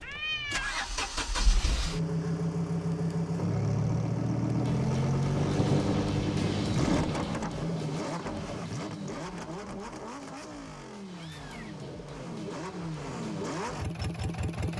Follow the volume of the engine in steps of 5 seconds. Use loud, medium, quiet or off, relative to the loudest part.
loud, loud, medium.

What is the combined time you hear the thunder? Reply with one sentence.
The thunder can be heard for 2 seconds in total.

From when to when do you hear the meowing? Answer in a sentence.
You can hear the meowing from 0.0 to 0.8 s and from 11.1 to 11.8 s.